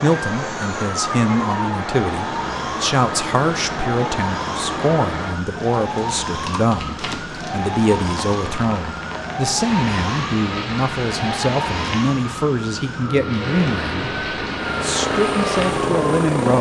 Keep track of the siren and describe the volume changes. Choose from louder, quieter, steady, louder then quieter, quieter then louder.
steady.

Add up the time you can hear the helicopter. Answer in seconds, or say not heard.
3 s.